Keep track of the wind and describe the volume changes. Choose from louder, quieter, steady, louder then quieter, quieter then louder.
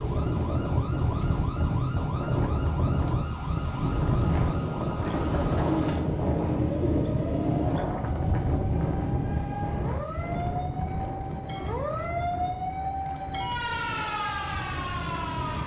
quieter.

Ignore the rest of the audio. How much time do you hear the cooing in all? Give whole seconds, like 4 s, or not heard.
3 s.